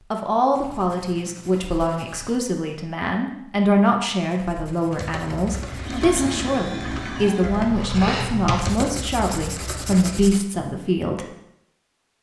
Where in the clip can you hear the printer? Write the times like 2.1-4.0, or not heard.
5.7-7.7.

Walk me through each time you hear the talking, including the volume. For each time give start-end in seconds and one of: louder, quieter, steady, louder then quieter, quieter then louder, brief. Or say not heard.
0.1-11.2 steady.